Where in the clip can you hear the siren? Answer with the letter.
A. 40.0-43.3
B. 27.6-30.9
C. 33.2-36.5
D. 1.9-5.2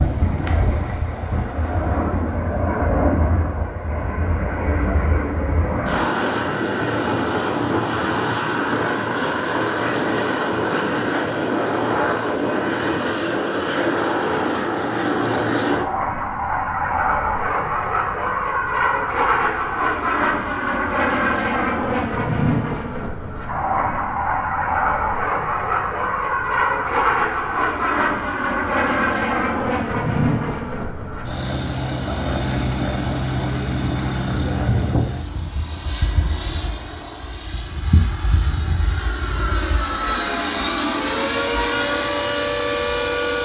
A.